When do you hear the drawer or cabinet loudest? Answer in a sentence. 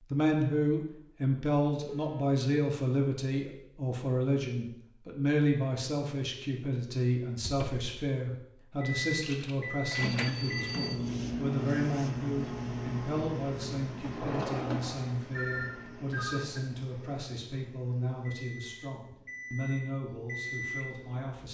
The volume of the drawer or cabinet peaks at 15 seconds.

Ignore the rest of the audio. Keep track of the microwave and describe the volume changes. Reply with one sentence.
The loudness of the microwave goes down, then up.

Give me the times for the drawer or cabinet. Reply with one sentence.
The drawer or cabinet can be heard from 7.4 to 7.8 s and from 14.0 to 15.2 s.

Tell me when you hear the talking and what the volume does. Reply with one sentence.
You can hear the talking from 0.1 to 21.4 s, getting quieter.